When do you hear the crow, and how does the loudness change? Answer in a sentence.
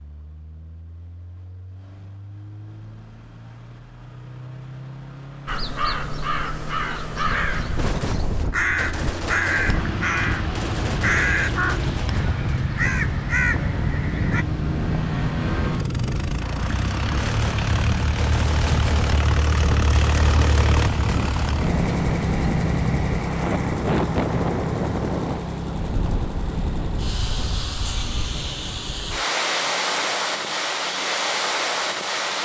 You can hear the crow from 5.5 to 14.4 s, at a steady volume.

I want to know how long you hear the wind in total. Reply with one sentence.
The wind can be heard for 25 seconds in total.